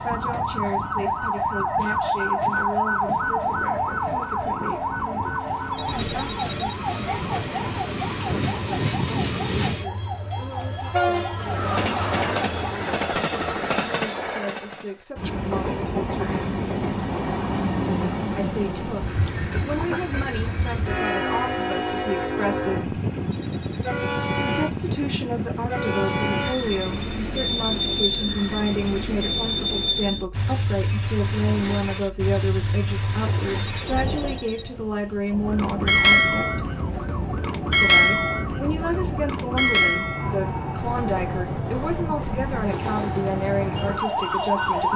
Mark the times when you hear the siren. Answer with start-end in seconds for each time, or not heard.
0.0-12.9, 35.3-44.9.